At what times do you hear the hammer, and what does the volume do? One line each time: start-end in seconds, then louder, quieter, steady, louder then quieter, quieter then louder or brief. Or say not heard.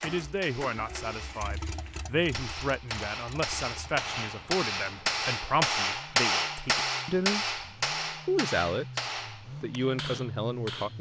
0.0-10.9 louder then quieter.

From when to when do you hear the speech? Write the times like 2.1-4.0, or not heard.
0.0-7.6, 8.2-10.9.